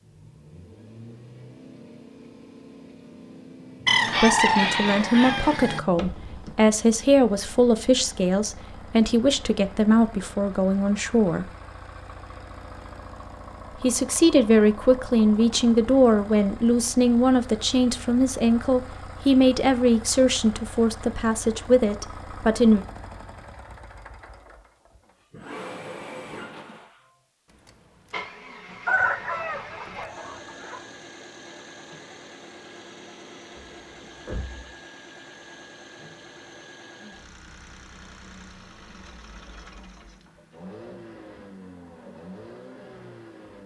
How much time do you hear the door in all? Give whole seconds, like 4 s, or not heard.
2 s.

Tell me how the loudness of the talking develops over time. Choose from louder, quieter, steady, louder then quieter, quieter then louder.
steady.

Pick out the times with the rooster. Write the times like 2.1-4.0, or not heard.
3.9-5.8, 28.9-30.8.